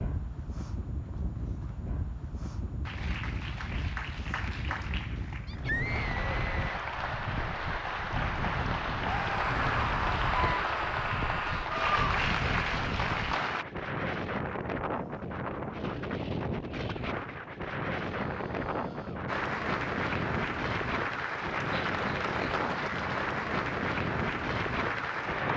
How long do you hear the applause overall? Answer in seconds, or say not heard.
17 s.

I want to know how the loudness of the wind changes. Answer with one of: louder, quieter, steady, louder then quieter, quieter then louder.
louder.